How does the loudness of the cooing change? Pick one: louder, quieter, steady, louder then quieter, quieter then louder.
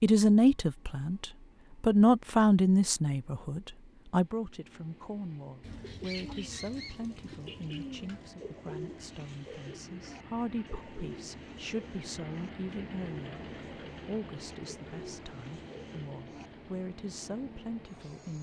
quieter.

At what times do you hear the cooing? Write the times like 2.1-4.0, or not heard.
5.6-16.5.